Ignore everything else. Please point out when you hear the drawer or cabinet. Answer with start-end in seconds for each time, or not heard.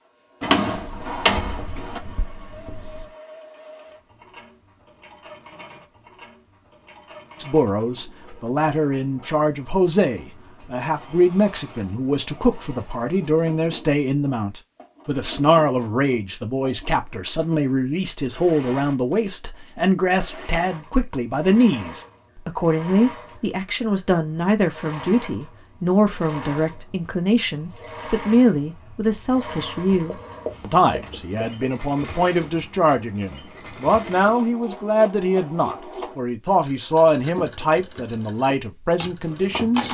0.4-2.0.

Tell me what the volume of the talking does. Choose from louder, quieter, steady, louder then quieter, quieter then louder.
steady.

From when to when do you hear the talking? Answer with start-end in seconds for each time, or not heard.
7.3-39.8.